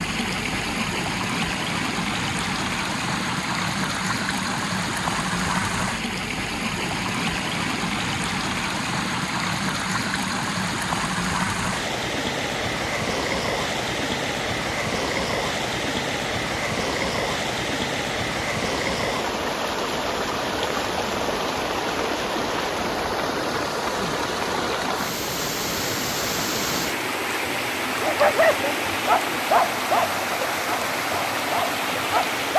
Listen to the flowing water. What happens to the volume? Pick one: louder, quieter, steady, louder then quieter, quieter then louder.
steady.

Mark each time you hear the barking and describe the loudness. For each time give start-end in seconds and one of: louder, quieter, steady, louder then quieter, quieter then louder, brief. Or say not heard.
28.0-32.5 quieter.